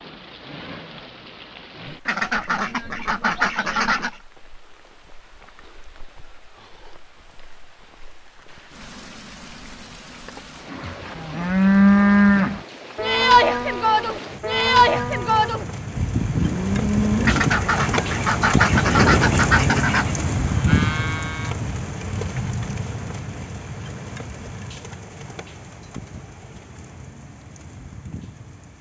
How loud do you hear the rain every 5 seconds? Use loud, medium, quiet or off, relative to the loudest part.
quiet, quiet, quiet, loud, loud, quiet.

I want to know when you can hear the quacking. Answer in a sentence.
You can hear the quacking from 2.0 to 4.2 s and from 17.2 to 20.1 s.